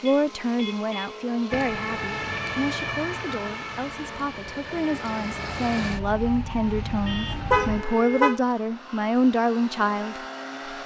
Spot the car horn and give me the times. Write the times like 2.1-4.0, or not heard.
0.1-1.2, 7.5-8.4.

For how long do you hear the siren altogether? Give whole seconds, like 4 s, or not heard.
7 s.